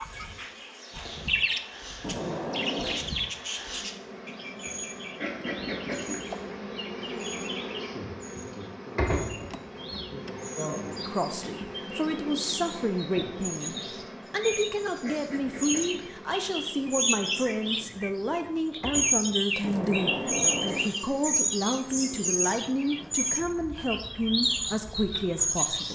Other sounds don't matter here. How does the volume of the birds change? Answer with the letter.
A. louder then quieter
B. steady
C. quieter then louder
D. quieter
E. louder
C.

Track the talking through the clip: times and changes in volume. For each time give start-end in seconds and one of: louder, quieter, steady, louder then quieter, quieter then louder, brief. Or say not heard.
11.0-25.9 steady.